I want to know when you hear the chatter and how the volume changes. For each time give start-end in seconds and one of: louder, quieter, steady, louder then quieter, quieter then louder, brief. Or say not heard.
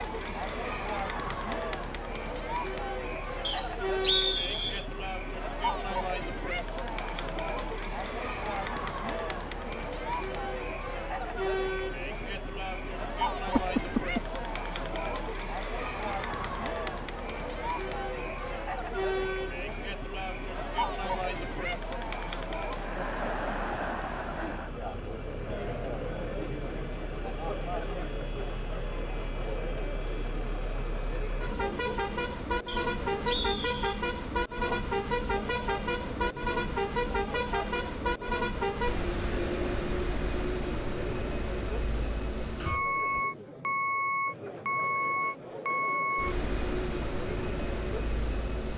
0.0-48.5 quieter.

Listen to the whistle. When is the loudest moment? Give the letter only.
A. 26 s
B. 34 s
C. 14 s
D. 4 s
D.